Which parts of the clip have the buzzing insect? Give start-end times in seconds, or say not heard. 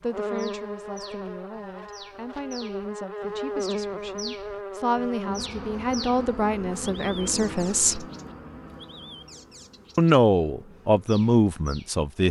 0.0-12.2.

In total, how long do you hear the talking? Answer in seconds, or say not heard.
10 s.